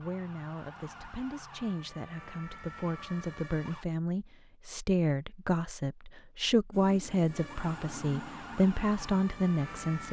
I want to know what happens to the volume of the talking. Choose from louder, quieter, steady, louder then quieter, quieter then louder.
louder.